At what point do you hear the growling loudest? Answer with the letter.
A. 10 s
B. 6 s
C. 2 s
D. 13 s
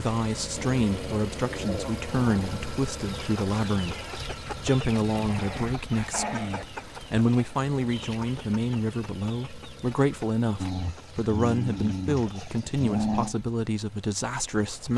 D.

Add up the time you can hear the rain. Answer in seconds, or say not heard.
not heard.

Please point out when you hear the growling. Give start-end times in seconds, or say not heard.
0.8-2.5, 5.2-6.7, 10.6-13.3.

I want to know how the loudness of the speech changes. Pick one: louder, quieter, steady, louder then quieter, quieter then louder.
steady.